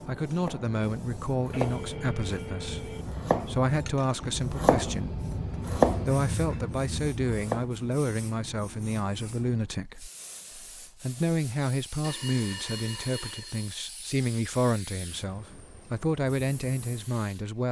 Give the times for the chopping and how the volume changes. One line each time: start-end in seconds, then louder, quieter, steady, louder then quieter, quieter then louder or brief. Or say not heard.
0.4-7.7 louder then quieter.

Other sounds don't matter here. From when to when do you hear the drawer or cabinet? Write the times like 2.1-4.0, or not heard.
not heard.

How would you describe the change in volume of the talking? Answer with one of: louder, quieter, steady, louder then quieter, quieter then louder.
steady.